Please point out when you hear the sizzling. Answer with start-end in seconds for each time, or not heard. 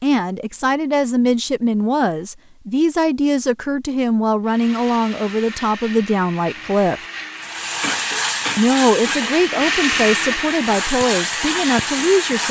7.3-12.4.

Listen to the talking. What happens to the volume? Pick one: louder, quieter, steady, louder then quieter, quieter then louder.
steady.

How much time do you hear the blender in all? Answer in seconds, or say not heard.
8 s.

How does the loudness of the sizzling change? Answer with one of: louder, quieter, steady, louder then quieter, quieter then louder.
quieter then louder.